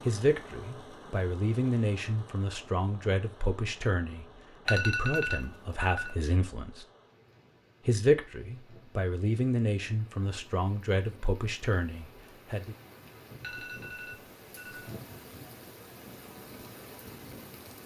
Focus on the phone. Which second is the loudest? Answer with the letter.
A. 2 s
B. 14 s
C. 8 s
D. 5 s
D.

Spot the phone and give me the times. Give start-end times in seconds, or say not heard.
4.7-6.2, 13.4-14.9.